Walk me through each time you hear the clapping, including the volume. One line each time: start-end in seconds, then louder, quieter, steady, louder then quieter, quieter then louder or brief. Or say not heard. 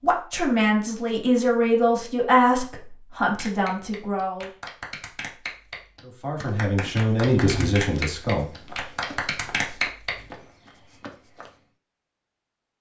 3.3-10.2 louder.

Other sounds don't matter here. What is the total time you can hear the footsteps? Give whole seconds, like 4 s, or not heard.
5 s.